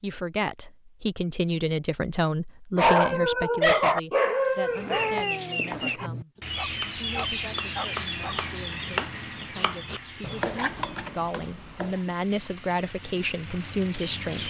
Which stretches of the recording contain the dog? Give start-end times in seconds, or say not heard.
2.8-8.4.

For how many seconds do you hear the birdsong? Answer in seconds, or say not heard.
10 s.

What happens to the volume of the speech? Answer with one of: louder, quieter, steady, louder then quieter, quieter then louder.
quieter then louder.